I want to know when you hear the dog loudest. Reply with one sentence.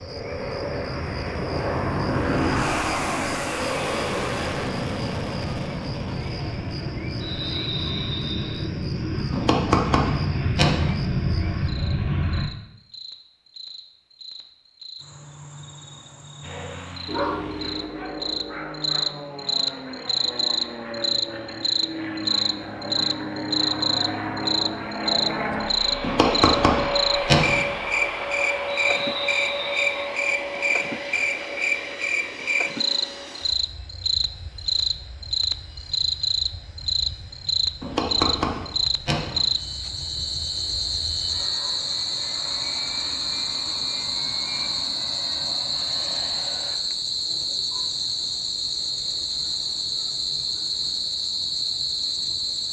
The loudest moment of the dog is at 17 seconds.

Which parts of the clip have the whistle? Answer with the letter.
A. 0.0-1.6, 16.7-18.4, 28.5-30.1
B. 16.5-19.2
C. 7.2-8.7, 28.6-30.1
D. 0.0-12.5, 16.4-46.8
C.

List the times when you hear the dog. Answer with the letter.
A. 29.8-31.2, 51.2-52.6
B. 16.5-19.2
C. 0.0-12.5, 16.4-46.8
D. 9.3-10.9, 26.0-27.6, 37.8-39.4
B.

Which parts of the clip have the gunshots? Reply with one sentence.
The gunshots can be heard from 9.3 to 10.9 s, from 26.0 to 27.6 s and from 37.8 to 39.4 s.